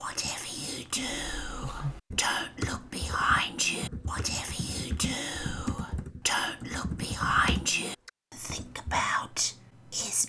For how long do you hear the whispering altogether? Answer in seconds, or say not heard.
10 s.